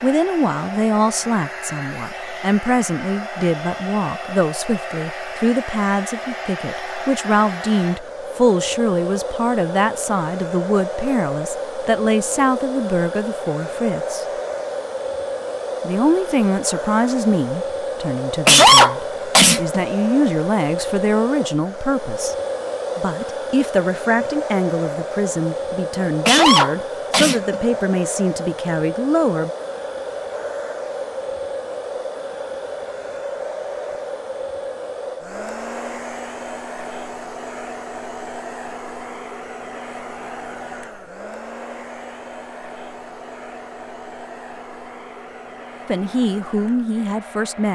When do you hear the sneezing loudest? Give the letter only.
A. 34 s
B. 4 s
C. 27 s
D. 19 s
D.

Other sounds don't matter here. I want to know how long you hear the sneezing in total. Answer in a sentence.
The sneezing can be heard for 3 seconds in total.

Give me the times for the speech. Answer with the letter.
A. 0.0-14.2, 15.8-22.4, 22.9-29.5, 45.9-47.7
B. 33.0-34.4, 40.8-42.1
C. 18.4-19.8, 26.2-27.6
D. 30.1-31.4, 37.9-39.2
A.